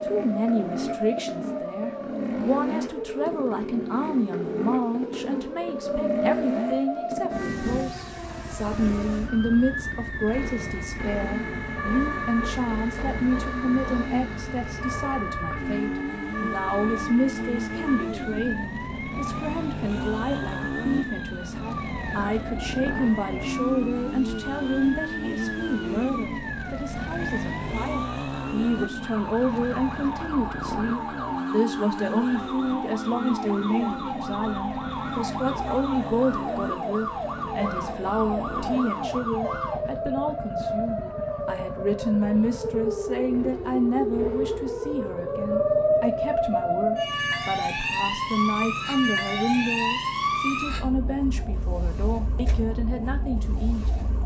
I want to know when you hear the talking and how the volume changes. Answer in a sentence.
You can hear the talking from 0.0 to 53.9 s, at a steady volume.